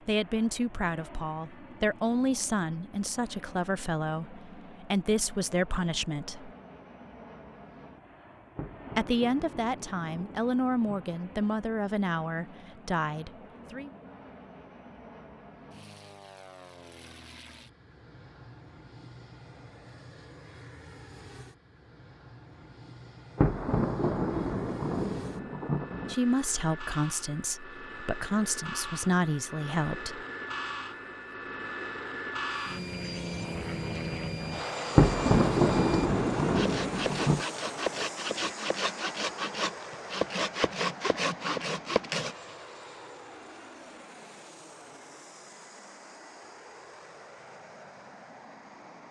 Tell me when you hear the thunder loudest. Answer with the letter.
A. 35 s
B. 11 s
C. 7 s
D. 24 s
A.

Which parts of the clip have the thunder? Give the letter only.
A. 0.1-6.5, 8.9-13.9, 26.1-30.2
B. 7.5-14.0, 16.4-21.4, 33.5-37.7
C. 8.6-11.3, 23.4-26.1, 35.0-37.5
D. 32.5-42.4
C.